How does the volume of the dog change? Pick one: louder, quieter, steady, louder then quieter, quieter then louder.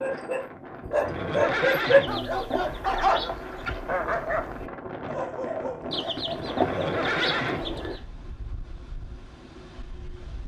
quieter.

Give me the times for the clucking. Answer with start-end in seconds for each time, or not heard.
1.8-3.5, 5.9-8.0.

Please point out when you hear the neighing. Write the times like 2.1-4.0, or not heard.
0.9-2.2, 6.5-8.0.